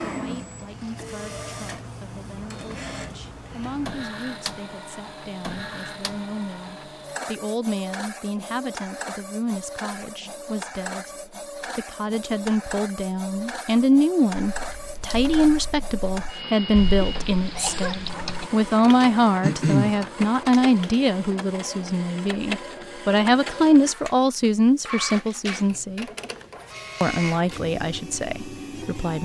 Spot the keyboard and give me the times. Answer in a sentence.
You can hear the keyboard from 14.5 to 20.9 s.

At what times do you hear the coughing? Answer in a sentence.
The coughing can be heard from 17.0 to 17.9 s.